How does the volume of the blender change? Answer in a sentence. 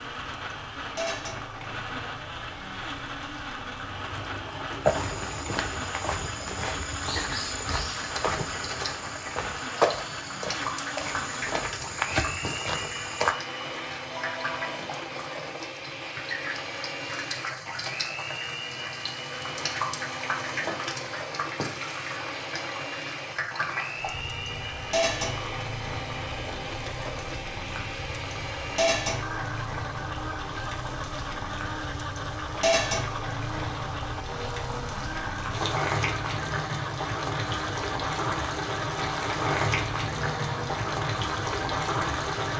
The loudness of the blender stays about the same.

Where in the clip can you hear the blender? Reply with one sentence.
You can hear the blender from 0.0 to 42.5 s.